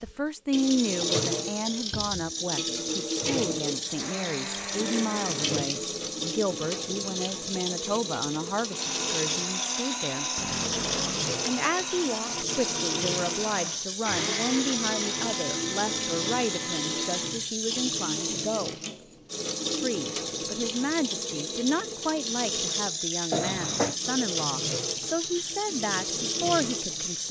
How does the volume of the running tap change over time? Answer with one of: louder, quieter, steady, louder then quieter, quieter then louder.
steady.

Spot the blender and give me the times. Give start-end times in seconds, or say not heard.
3.8-5.7, 8.7-17.4.